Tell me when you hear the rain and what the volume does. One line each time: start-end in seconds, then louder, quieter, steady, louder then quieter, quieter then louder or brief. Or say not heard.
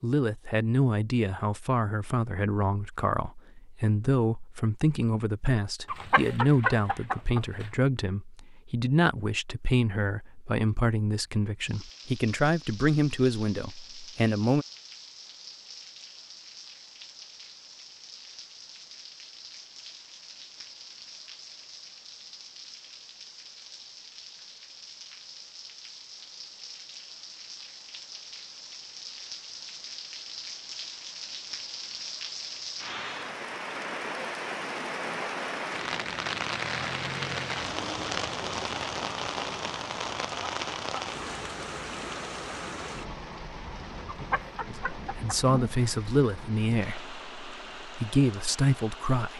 11.6-49.3 louder then quieter.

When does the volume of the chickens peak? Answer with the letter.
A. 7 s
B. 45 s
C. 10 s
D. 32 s
A.